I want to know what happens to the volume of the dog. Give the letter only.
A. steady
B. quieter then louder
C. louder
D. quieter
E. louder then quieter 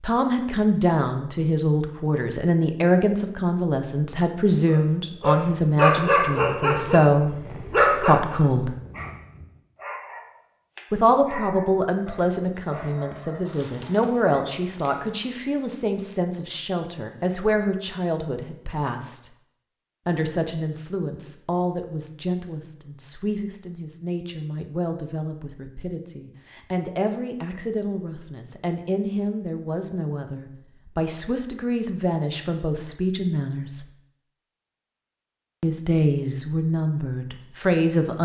D.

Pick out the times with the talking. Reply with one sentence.
The talking can be heard from 0.0 to 8.8 s, from 10.9 to 19.3 s, from 20.1 to 33.9 s and from 35.6 to 38.1 s.